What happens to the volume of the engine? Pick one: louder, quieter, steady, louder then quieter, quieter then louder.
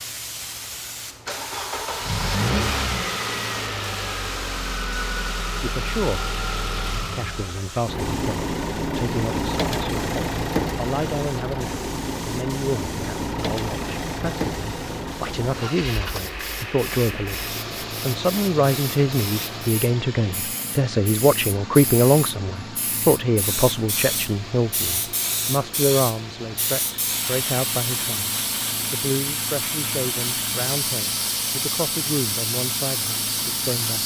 quieter.